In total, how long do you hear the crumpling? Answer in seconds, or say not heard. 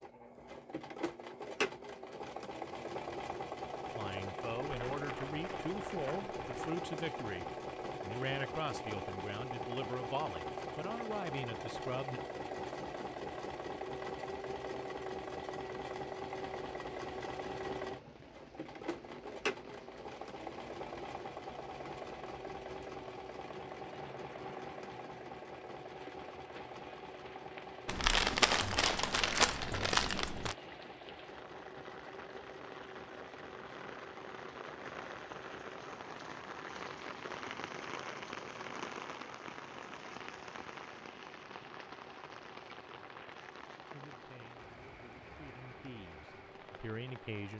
5 s.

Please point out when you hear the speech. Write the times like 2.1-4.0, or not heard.
4.0-12.2, 43.9-47.5.